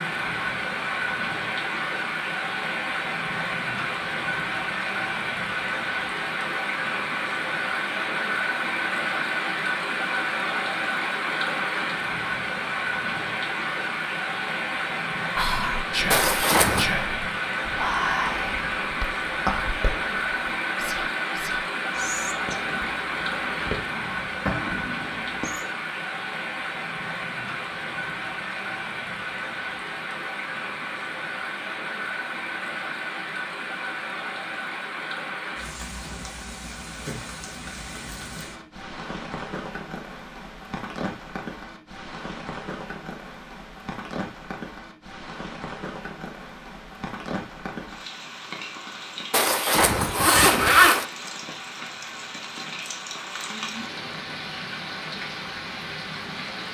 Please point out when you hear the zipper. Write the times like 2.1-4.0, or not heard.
16.1-16.9, 49.3-51.0.